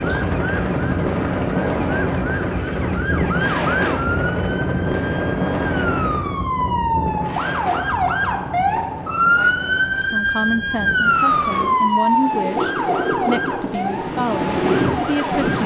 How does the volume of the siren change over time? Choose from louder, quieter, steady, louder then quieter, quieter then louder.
louder then quieter.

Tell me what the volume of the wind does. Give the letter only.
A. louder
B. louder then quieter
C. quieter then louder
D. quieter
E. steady
C.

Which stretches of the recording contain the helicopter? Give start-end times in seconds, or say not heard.
0.0-6.2.